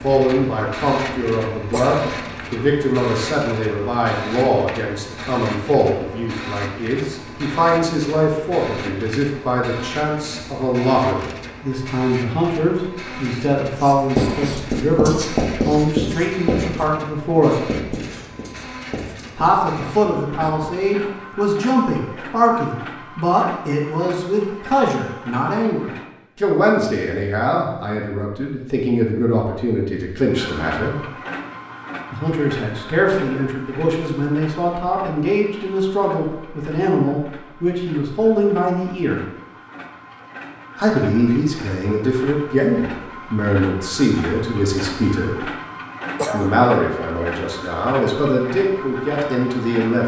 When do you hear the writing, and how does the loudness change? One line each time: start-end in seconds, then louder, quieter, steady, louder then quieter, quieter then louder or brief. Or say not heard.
13.8-20.9 quieter.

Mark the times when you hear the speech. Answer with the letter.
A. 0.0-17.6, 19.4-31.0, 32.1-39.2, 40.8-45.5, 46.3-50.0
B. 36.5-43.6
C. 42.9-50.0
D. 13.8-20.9
A.